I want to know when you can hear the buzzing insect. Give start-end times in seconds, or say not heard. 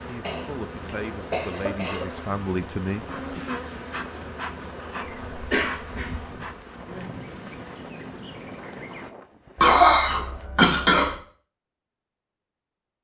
0.0-9.1.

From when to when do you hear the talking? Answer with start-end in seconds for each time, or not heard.
0.1-3.5.